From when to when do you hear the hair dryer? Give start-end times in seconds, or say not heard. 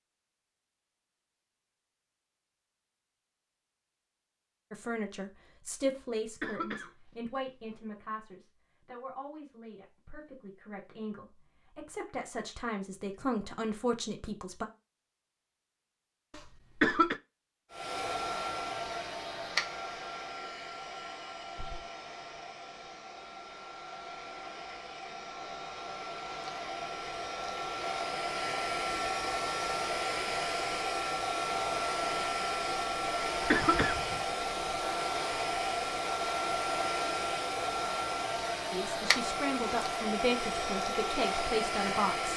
17.7-42.3.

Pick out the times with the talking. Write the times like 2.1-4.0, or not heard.
4.7-14.7, 38.7-42.3.